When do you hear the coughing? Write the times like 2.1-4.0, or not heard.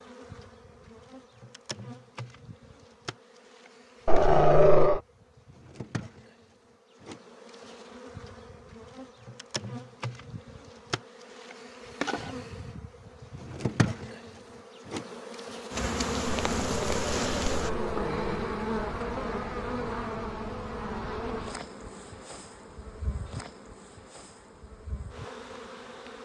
not heard.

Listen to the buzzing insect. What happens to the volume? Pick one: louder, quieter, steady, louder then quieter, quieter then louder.
louder then quieter.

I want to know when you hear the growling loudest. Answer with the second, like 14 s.
5 s.